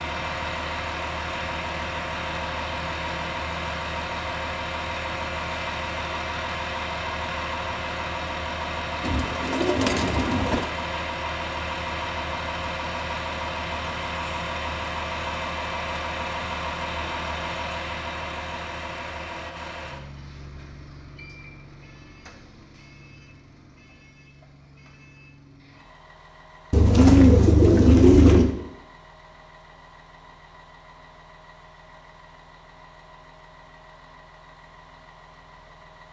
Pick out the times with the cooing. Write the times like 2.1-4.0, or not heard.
9.0-10.7, 26.7-28.6.